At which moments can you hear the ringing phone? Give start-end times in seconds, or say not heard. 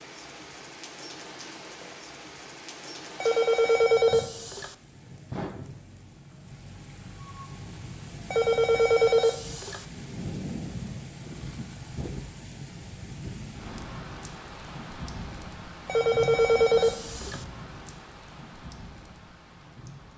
3.2-4.7, 8.3-9.8, 15.8-17.4.